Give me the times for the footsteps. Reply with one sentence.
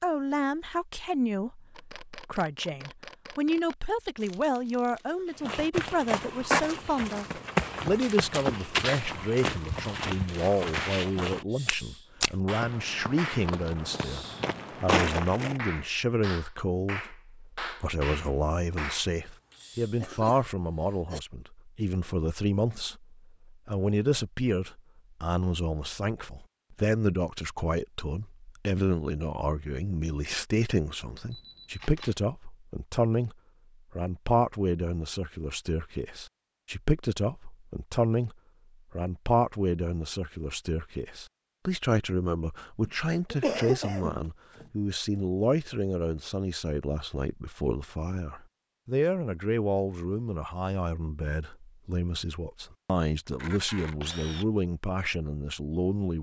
The footsteps can be heard from 5.4 to 15.6 s.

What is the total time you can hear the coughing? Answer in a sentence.
The coughing can be heard for 5 seconds in total.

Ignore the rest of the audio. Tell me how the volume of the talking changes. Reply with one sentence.
The volume of the talking stays about the same.